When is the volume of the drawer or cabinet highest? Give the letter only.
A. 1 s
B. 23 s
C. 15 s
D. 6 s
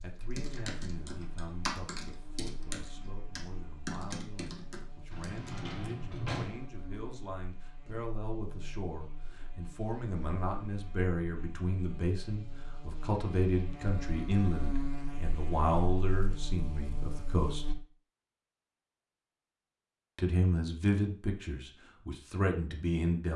D.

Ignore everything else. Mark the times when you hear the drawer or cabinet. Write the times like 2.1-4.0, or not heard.
5.1-6.7.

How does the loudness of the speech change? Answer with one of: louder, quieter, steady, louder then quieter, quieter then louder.
louder.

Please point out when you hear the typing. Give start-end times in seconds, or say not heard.
0.3-5.8.